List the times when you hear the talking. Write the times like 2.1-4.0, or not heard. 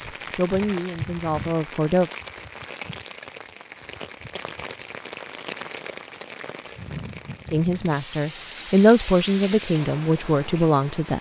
0.0-2.1, 7.5-11.1.